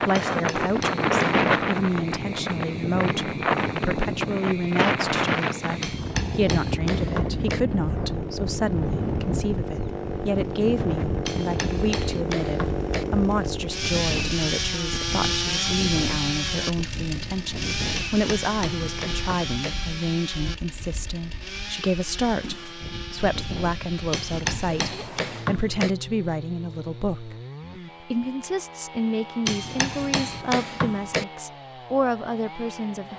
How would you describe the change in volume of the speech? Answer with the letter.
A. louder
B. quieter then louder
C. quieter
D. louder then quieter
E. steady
E.